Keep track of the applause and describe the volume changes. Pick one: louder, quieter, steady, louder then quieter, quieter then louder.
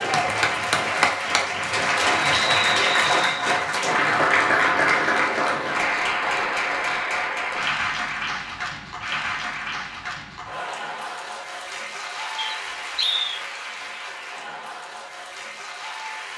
quieter.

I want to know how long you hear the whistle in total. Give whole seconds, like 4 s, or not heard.
2 s.